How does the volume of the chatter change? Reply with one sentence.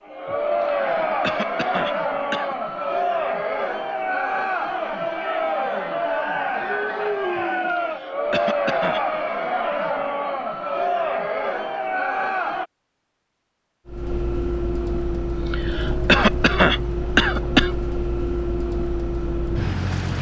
The volume of the chatter stays about the same.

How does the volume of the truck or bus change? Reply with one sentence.
The loudness of the truck or bus stays about the same.